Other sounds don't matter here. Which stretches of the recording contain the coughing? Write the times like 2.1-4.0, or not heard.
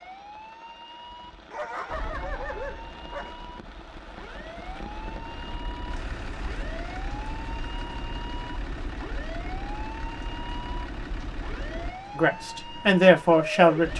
not heard.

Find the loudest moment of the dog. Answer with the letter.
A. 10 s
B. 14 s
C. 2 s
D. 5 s
C.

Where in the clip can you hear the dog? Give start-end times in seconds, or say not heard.
1.5-3.4.